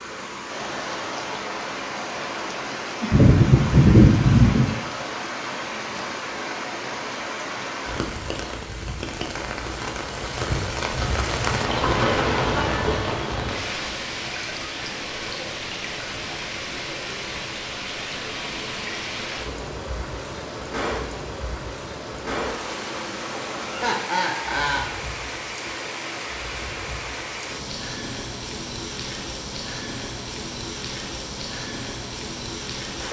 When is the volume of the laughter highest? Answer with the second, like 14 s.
4 s.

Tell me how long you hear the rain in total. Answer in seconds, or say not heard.
33 s.